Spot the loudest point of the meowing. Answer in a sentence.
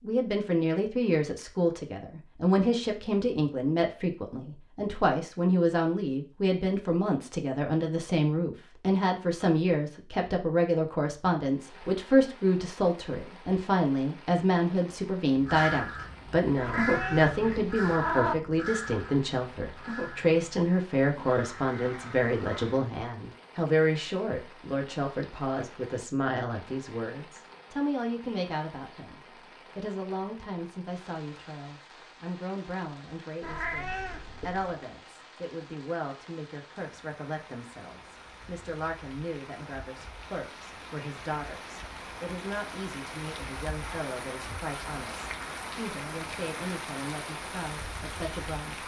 The volume of the meowing peaks at 18 seconds.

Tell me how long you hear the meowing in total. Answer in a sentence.
You can hear the meowing for 3 seconds altogether.